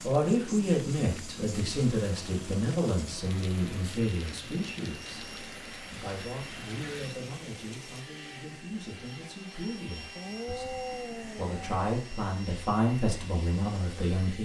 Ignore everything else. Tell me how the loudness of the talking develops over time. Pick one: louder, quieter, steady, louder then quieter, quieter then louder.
quieter then louder.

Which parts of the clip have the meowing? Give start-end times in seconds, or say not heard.
10.2-11.8.